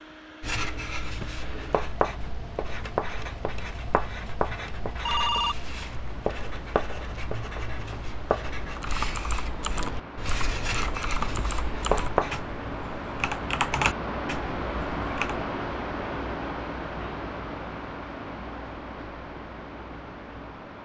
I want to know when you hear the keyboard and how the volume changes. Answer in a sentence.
You can hear the keyboard from 8.7 to 15.4 s, getting louder.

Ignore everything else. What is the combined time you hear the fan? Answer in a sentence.
The fan can be heard for 21 seconds in total.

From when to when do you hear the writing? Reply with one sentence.
You can hear the writing from 0.4 to 12.4 s.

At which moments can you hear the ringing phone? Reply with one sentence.
You can hear the ringing phone from 5.0 to 5.7 s.